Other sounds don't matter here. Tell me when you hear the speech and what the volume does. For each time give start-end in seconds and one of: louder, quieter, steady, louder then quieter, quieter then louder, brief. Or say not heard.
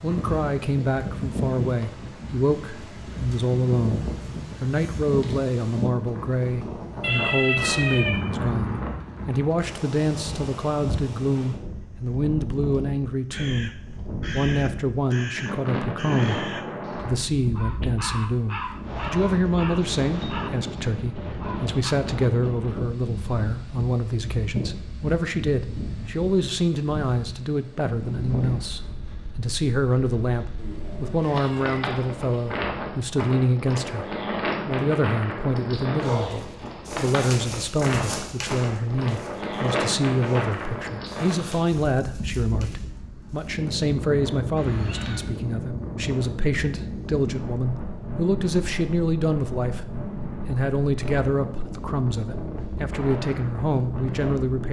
0.0-13.7 steady
14.3-34.0 steady
34.6-54.6 steady.